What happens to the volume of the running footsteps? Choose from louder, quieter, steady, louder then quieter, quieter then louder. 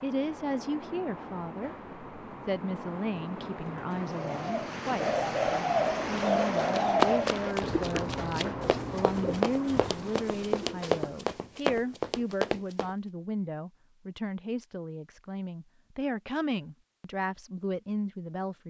quieter then louder.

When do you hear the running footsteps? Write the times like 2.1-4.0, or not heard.
6.2-12.9.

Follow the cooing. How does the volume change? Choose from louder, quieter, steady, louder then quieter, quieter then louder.
quieter.